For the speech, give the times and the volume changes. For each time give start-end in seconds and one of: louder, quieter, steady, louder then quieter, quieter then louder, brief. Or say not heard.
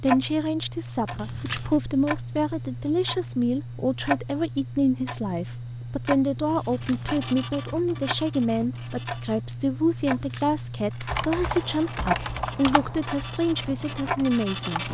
0.0-14.8 steady.